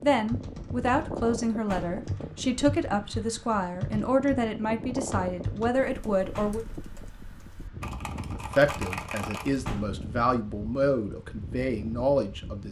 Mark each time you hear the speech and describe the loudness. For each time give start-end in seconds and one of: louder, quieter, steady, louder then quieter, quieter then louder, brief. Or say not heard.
0.0-6.7 steady
8.3-12.6 louder.